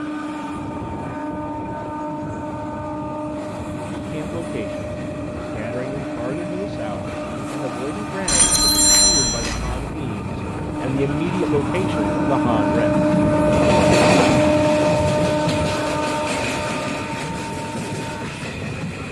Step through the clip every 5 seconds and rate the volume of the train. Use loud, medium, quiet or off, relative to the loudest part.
medium, medium, loud, medium.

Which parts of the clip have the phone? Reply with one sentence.
The phone can be heard from 8.2 to 9.9 s.